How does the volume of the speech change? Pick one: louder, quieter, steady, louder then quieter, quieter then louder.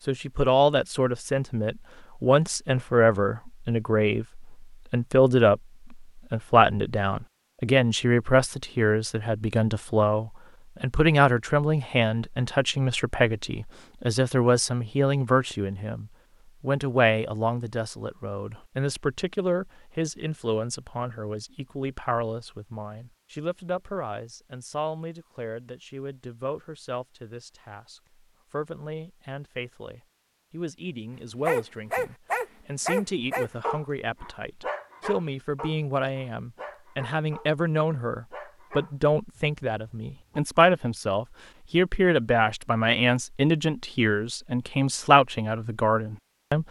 quieter then louder.